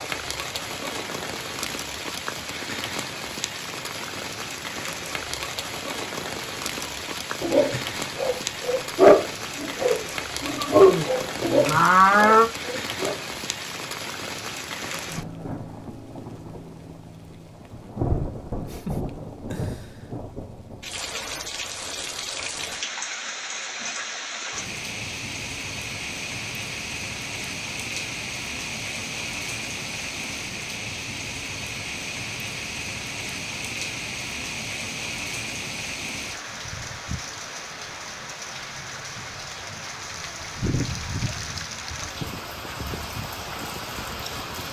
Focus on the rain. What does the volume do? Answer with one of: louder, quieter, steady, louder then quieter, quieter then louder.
steady.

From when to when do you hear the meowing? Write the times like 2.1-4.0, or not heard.
not heard.